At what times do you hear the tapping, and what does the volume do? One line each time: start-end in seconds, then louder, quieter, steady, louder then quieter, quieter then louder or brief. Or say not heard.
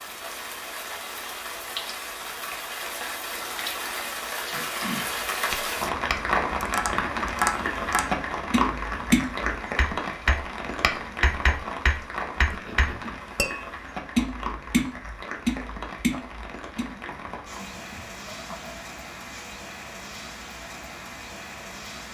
5.5-16.9 steady.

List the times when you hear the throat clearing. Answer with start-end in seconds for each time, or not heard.
4.5-5.2, 12.3-13.2, 16.8-18.9.